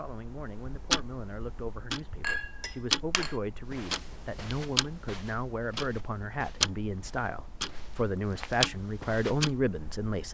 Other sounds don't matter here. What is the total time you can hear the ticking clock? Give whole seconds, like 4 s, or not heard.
10 s.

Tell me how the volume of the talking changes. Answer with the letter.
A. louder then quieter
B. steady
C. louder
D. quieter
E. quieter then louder
C.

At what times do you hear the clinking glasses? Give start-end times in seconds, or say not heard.
2.2-3.4.